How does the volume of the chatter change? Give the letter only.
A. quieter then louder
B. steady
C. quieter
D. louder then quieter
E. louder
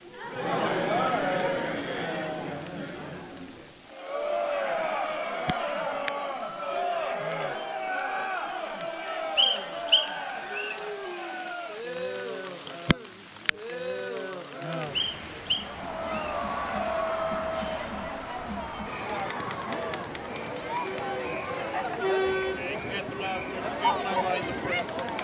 A.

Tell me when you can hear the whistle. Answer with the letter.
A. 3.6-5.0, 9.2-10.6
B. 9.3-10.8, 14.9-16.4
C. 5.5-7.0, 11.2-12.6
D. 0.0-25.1
B.